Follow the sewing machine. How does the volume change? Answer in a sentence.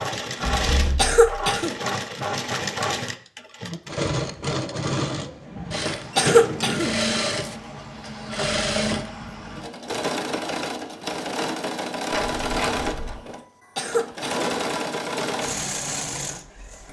The loudness of the sewing machine stays about the same.